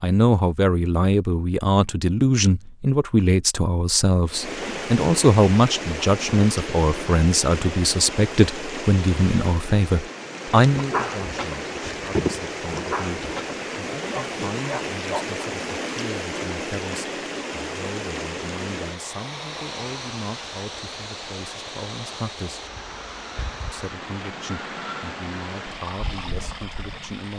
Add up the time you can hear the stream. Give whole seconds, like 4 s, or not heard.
23 s.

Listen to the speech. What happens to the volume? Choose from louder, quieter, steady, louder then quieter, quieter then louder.
quieter.